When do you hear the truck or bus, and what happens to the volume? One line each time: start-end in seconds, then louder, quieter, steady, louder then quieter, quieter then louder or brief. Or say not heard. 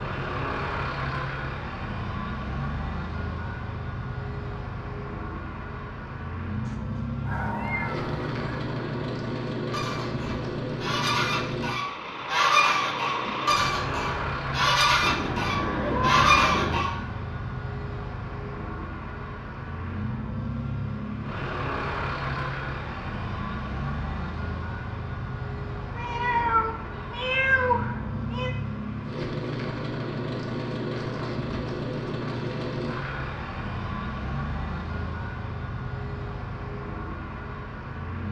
0.0-38.2 steady.